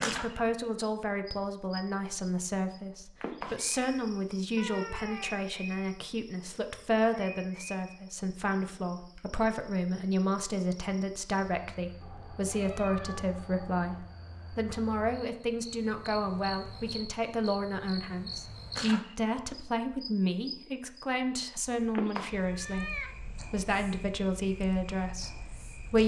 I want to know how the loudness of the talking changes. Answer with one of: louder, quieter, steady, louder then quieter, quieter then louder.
steady.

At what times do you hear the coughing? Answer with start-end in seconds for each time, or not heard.
not heard.